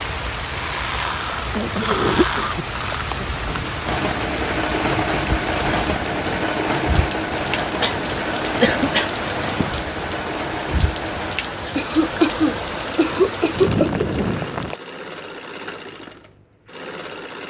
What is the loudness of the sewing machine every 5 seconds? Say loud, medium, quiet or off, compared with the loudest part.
loud, loud, medium, medium.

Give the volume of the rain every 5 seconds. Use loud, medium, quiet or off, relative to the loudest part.
loud, loud, loud, off.